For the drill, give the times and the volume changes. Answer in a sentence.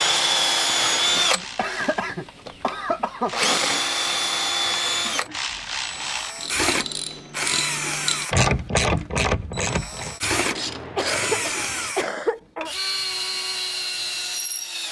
You can hear the drill from 0.0 to 14.8 s, getting quieter.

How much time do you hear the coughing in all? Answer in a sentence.
You can hear the coughing for 4 seconds altogether.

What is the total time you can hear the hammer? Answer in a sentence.
The hammer can't be heard in this clip.